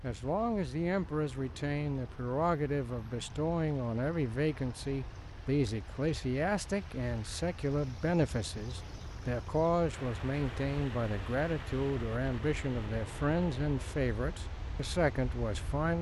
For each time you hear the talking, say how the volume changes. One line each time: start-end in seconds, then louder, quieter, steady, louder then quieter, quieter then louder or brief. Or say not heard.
0.0-15.9 steady.